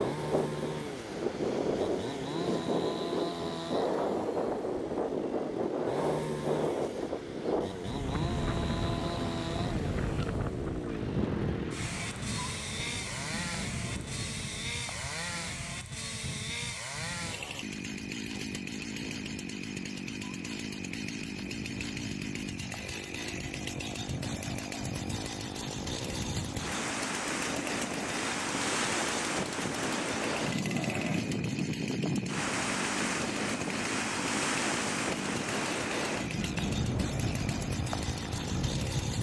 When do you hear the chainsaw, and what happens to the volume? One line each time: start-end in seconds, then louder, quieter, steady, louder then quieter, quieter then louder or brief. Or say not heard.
0.0-39.1 steady.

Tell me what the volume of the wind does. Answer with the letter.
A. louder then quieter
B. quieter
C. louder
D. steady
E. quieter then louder
E.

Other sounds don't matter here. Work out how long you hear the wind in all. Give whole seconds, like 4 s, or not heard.
39 s.